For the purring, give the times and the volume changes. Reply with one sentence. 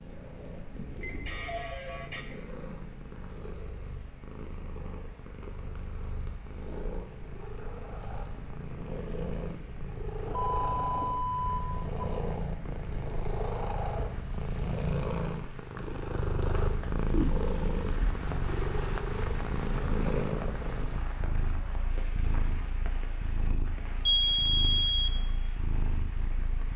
The purring can be heard from 0.0 to 26.7 s, getting louder then quieter.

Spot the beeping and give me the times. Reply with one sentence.
The beeping can be heard from 1.0 to 2.4 s, from 10.3 to 12.1 s and from 24.1 to 25.1 s.